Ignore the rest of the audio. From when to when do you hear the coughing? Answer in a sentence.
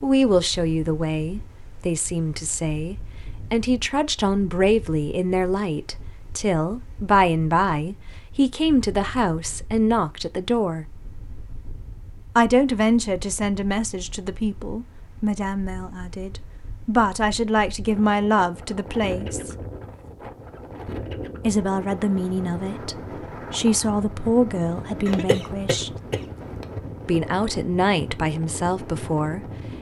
The coughing can be heard from 25.1 to 26.6 s.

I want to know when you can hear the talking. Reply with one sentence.
You can hear the talking from 0.0 to 10.8 s, from 12.3 to 19.5 s, from 21.4 to 25.9 s and from 27.1 to 29.7 s.